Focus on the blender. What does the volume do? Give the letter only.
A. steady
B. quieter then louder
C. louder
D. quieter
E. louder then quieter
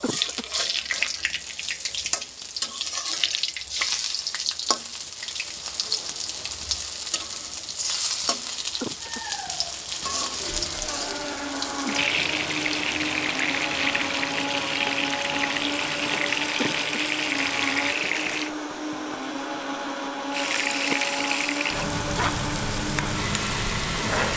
A.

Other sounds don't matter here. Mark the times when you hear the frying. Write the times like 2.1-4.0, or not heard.
0.0-18.5, 20.3-24.3.